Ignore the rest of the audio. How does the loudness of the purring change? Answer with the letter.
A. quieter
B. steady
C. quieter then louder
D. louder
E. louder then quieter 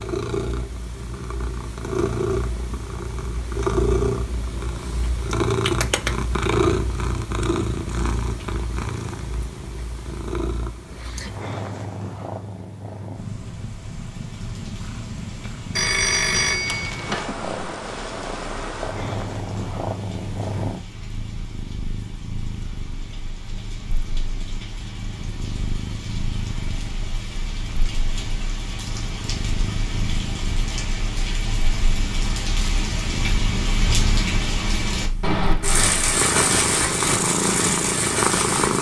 C.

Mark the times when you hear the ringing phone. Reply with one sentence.
The ringing phone can be heard from 15.8 to 17.4 s.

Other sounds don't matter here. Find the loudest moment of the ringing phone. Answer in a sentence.
The volume of the ringing phone peaks at 16 seconds.